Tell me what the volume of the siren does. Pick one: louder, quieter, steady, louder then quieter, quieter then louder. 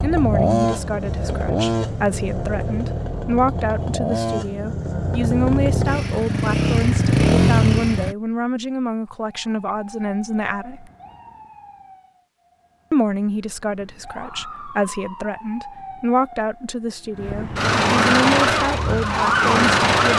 quieter then louder.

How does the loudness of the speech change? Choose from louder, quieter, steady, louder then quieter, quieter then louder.
steady.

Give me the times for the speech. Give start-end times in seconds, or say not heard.
0.0-10.9, 12.9-20.1.